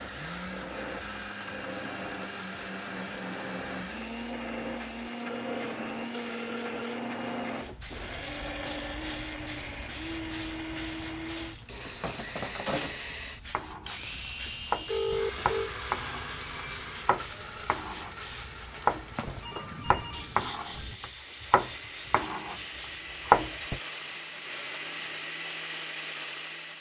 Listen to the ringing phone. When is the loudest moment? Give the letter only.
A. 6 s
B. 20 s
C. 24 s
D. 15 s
D.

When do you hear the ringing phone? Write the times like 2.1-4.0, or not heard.
5.2-7.0, 14.4-15.7, 19.4-20.9.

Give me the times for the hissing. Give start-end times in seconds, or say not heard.
0.0-26.7.